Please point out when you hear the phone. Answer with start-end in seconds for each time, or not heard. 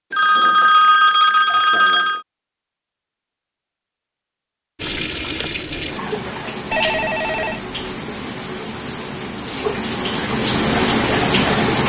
0.1-2.2, 6.7-7.7.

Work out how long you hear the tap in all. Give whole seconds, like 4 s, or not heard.
7 s.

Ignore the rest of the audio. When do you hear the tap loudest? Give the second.
11 s.